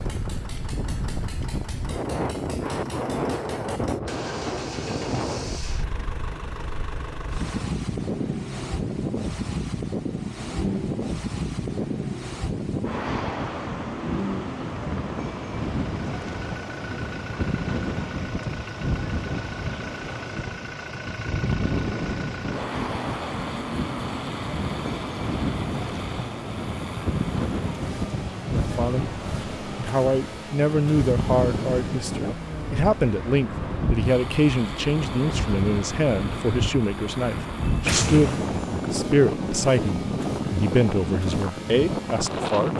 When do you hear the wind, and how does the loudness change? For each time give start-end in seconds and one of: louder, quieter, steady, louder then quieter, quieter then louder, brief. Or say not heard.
0.0-42.7 steady.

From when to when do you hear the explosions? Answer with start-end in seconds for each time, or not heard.
37.9-38.9.